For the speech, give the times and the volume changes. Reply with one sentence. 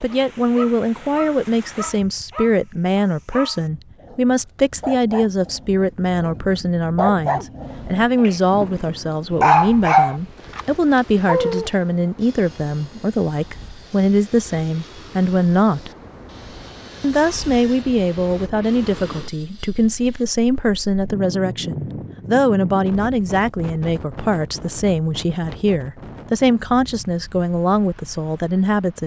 You can hear the speech from 0.0 to 15.9 s, at a steady volume; and from 17.0 to 29.0 s, at a steady volume.